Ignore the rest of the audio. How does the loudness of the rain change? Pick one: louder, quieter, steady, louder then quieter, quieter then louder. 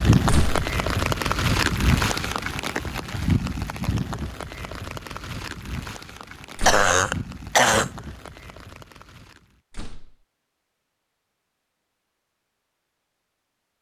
quieter.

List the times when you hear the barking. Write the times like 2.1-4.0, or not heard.
not heard.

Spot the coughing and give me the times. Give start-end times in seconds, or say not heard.
6.7-7.9.